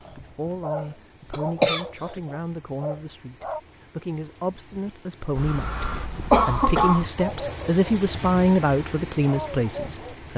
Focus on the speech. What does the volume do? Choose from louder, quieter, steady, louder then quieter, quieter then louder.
louder.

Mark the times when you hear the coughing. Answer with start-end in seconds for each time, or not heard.
1.3-2.2, 5.3-7.1.